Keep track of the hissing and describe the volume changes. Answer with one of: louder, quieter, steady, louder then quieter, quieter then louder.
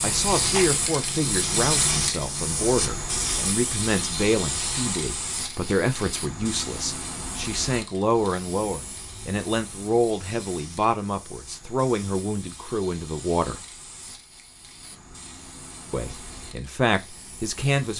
quieter.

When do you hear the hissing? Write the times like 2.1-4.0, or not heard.
0.0-17.9.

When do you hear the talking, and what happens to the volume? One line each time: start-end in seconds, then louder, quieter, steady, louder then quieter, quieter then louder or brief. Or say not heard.
0.0-13.6 steady
15.9-17.9 brief.